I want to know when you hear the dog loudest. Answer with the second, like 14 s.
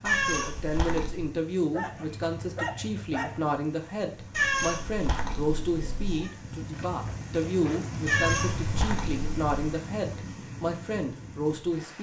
3 s.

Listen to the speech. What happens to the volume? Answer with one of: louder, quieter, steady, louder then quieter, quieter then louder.
steady.